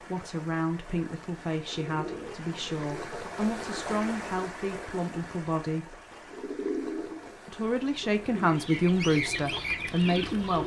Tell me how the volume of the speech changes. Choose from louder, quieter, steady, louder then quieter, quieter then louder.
louder.